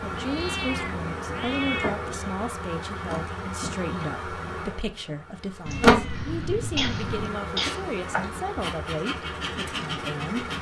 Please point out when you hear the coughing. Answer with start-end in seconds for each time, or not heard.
5.7-8.0.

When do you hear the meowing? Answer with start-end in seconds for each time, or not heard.
0.0-2.1, 5.7-7.3.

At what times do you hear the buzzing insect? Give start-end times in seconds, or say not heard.
0.0-10.5.